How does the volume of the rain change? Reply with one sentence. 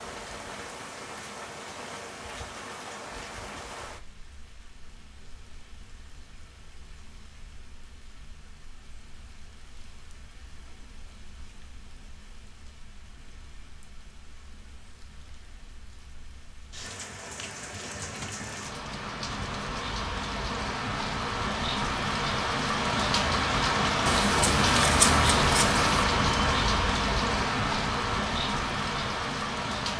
The loudness of the rain goes down, then up.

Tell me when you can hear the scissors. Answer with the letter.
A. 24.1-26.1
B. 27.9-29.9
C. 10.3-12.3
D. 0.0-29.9
A.